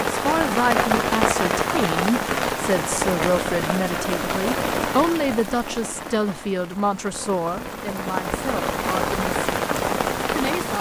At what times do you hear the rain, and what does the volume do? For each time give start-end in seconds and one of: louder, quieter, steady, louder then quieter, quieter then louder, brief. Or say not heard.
0.0-10.7 quieter then louder.